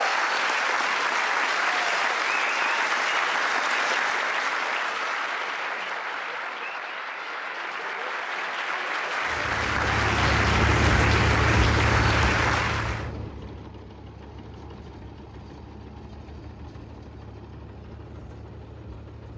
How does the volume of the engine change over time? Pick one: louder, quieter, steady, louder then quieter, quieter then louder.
quieter.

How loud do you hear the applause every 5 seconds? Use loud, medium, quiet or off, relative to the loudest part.
loud, medium, loud, off.